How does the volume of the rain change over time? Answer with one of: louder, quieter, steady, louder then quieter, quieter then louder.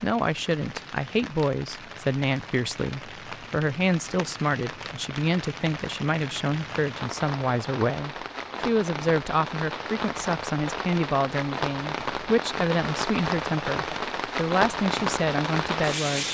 louder.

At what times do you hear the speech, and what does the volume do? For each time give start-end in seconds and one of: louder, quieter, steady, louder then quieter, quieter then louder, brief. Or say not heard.
0.0-16.2 steady.